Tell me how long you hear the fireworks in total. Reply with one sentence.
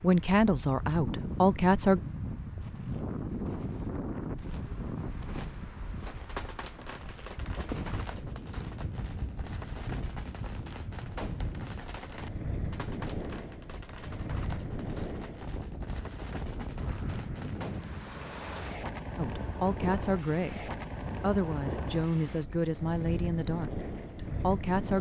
The fireworks can be heard for 12 seconds in total.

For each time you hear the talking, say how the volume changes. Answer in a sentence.
You can hear the talking briefly from 0.0 to 2.0 s; and from 19.1 to 24.9 s, at a steady volume.